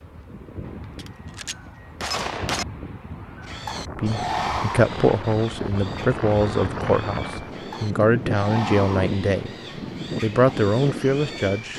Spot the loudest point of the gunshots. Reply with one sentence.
The loudest moment of the gunshots is at 2 seconds.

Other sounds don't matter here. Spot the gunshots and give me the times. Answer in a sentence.
The gunshots can be heard from 0.7 to 2.6 s.